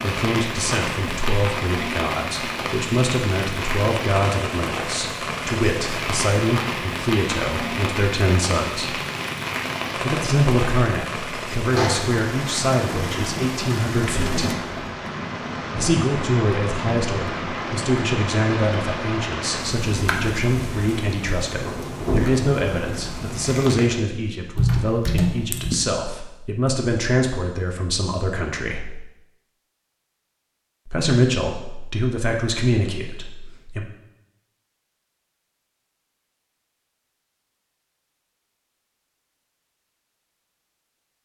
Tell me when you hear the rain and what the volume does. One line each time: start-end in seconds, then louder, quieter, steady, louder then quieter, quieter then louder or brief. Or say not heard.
0.0-24.0 steady.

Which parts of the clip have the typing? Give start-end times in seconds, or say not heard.
24.6-25.8.